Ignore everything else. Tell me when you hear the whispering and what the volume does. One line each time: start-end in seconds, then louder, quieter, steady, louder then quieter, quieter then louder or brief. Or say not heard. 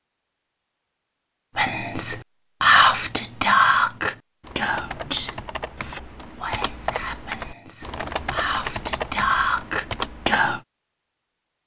1.6-10.6 quieter then louder.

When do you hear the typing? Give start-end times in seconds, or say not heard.
4.4-10.4.